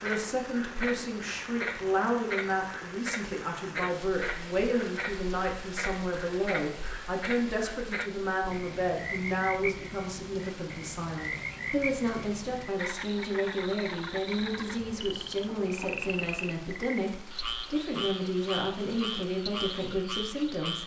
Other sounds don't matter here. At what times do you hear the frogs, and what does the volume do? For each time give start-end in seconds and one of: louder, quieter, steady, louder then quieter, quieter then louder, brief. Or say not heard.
0.0-20.8 steady.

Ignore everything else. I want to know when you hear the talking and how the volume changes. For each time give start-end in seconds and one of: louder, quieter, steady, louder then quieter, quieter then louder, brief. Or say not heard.
0.0-20.8 steady.